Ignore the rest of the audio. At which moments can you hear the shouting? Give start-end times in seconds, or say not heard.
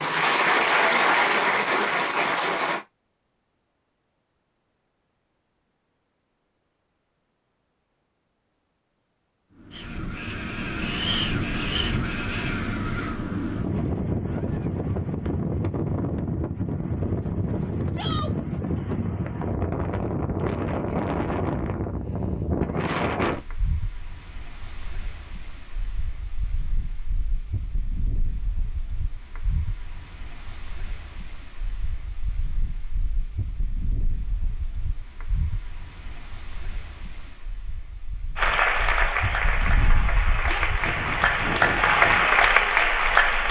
17.9-18.4, 40.4-40.9.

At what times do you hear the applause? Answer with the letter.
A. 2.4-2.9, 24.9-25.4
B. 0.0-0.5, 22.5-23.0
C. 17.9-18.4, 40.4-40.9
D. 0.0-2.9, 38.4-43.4
D.